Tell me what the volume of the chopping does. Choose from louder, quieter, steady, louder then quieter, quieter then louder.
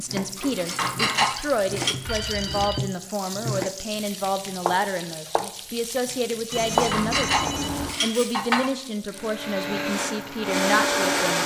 louder.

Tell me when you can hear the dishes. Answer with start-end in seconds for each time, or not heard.
0.3-1.9, 6.5-8.8.